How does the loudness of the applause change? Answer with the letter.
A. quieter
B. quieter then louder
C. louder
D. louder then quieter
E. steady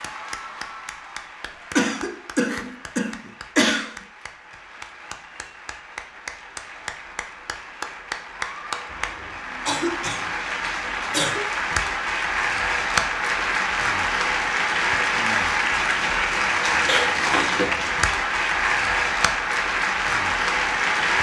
C.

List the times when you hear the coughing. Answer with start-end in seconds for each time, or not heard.
1.8-4.0, 8.9-11.4, 16.9-17.7.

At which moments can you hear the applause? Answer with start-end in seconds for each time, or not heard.
0.0-21.1.